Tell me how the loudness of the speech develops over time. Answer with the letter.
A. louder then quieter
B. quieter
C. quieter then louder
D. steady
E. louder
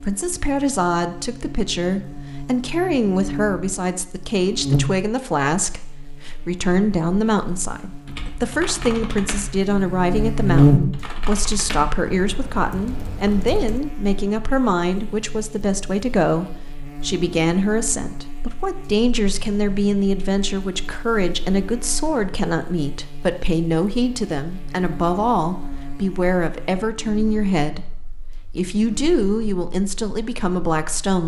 D.